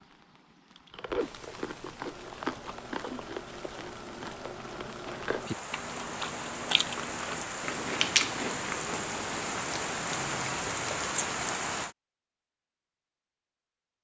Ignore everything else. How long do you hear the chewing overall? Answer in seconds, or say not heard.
11 s.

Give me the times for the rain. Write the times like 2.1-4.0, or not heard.
0.0-11.9.